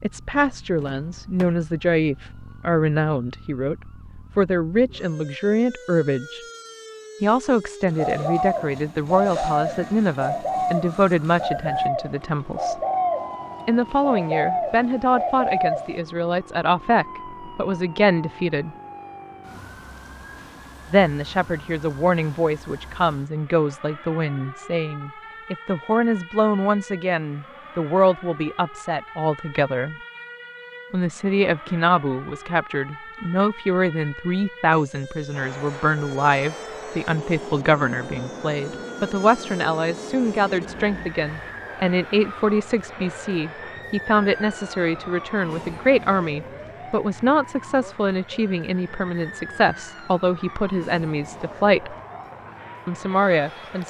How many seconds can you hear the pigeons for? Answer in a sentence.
You can hear the pigeons for 8 seconds altogether.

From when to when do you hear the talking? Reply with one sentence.
The talking can be heard from 0.0 to 6.4 s, from 7.2 to 12.8 s, from 13.7 to 18.8 s, from 20.9 to 29.9 s, from 30.9 to 52.0 s and from 52.9 to 53.8 s.